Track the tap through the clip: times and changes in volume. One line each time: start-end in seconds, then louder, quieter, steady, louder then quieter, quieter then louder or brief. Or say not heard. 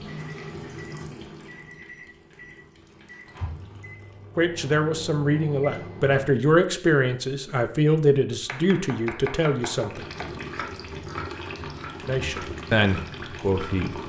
0.0-4.5 quieter
9.7-14.0 steady.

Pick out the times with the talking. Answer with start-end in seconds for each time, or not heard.
4.3-10.1, 12.1-14.0.